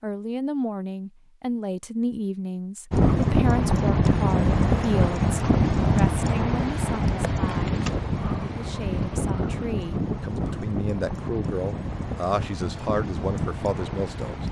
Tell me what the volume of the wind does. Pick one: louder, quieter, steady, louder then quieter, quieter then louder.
quieter.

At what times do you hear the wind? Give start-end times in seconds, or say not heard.
2.9-14.4.